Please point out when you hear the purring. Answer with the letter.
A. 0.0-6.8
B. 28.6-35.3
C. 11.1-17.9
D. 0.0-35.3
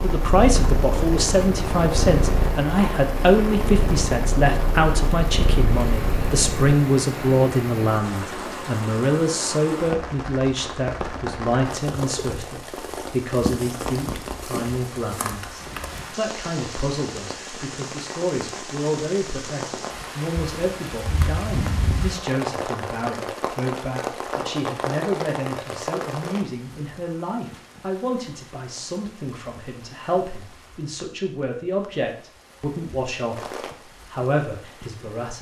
A.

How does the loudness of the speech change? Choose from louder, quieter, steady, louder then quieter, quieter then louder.
quieter.